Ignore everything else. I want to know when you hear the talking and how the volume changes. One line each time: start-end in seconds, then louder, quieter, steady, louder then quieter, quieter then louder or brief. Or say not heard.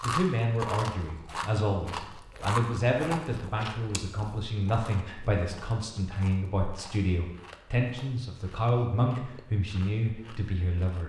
0.0-11.0 steady.